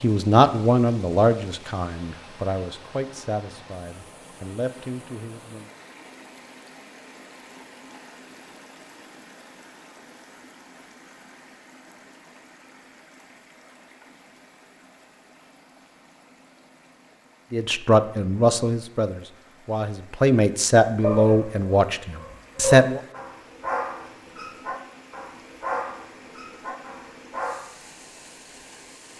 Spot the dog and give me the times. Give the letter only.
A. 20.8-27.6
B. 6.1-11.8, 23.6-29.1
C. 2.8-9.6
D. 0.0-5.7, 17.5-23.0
A.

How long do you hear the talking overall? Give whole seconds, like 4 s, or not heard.
11 s.